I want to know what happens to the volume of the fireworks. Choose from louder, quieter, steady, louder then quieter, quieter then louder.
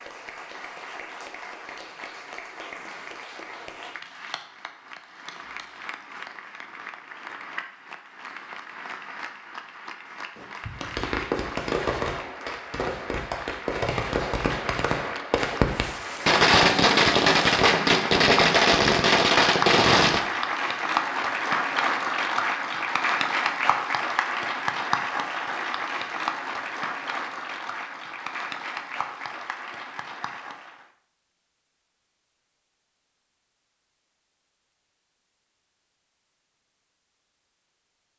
louder.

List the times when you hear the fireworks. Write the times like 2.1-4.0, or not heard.
10.3-20.2.